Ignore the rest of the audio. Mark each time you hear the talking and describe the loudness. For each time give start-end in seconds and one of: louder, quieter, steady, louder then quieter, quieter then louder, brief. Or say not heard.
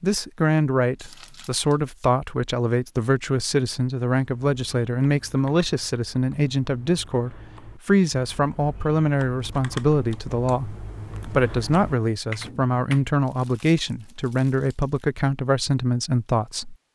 0.0-16.8 steady.